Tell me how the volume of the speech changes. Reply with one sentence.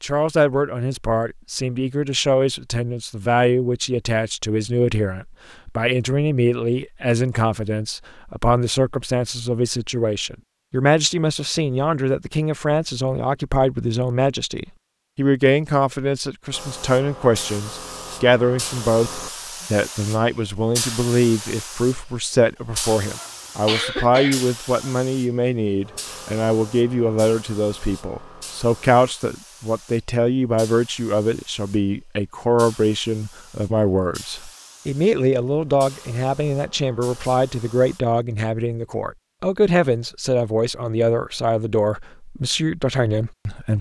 The loudness of the speech stays about the same.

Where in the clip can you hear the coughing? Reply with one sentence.
The coughing can be heard from 23.1 to 24.9 s.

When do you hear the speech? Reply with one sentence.
The speech can be heard from 0.0 to 43.7 s.